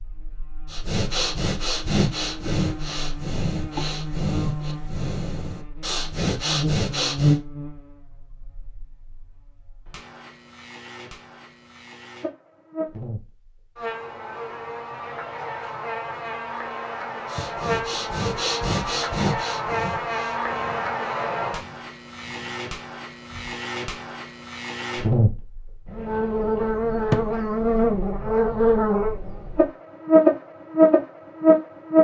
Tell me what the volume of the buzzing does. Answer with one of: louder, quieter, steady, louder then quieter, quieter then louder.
louder.